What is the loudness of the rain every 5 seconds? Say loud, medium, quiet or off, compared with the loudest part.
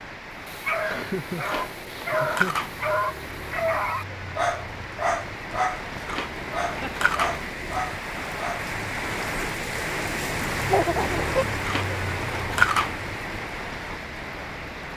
medium, loud, loud.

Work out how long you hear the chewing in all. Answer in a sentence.
You can hear the chewing for 4 seconds altogether.